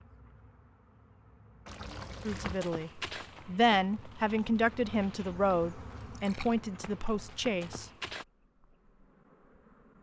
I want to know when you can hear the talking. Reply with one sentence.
The talking can be heard from 2.1 to 7.9 s.